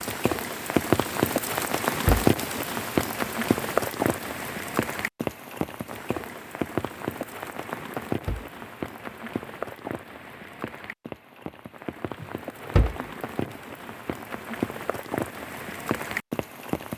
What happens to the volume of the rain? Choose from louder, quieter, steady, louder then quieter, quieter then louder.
quieter then louder.